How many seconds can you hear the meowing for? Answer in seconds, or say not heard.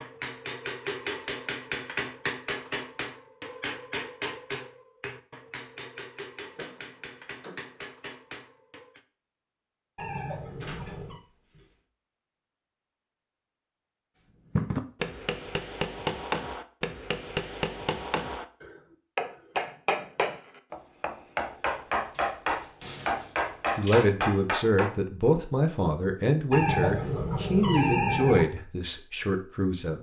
3 s.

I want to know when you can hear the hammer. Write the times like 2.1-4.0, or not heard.
0.0-9.0, 14.6-24.9.